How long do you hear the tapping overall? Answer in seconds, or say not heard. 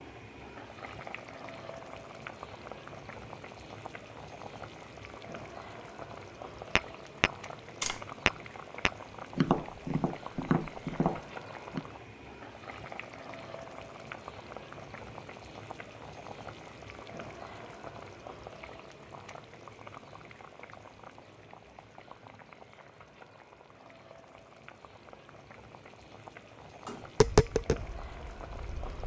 7 s.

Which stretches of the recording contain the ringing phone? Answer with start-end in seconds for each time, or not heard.
not heard.